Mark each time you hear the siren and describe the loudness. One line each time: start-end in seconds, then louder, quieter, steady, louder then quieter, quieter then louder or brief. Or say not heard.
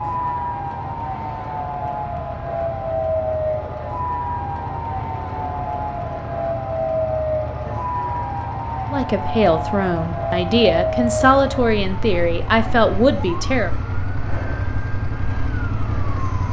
0.0-16.4 quieter.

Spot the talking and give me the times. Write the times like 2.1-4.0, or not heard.
8.9-13.7.